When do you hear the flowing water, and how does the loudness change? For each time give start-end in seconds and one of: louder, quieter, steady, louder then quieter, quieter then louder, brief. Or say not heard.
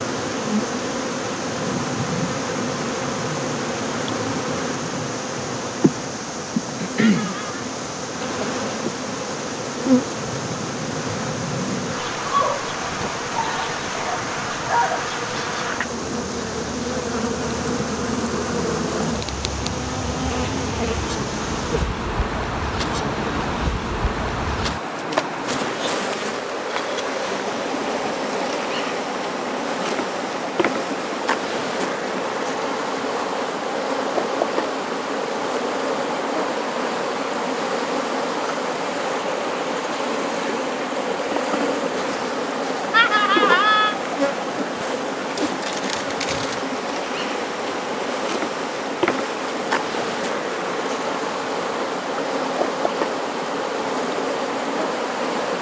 0.0-55.5 steady.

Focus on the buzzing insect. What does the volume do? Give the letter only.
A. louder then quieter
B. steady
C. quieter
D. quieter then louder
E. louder
B.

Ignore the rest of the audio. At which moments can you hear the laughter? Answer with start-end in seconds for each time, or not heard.
7.0-7.7, 42.9-44.0.